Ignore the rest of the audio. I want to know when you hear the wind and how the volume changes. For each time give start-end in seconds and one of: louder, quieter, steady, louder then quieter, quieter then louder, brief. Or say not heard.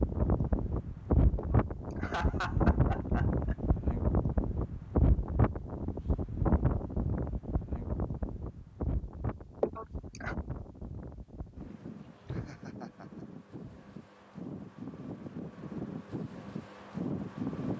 0.0-17.7 quieter then louder.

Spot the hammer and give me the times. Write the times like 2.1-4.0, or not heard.
not heard.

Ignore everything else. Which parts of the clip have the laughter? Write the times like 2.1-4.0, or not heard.
1.4-3.5, 9.6-10.3, 12.2-13.9.